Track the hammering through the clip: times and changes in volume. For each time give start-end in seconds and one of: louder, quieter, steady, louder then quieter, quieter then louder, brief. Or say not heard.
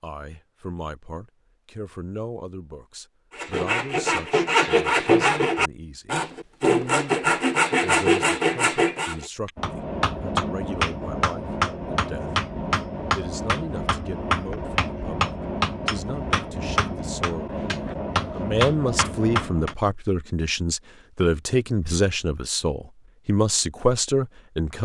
9.4-19.8 steady.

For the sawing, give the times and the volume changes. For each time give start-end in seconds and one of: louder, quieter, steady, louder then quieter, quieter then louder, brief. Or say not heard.
3.4-9.2 steady.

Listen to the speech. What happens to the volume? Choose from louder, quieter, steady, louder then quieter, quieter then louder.
louder.